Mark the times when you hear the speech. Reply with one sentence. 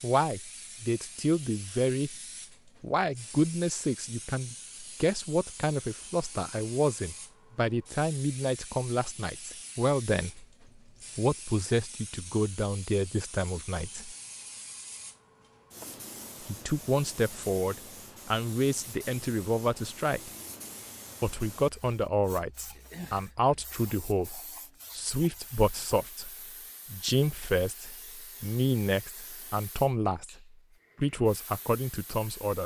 The speech can be heard from 0.0 to 2.1 s, from 2.8 to 10.4 s, from 11.2 to 14.2 s, from 16.4 to 20.3 s, from 21.2 to 26.3 s and from 26.9 to 32.6 s.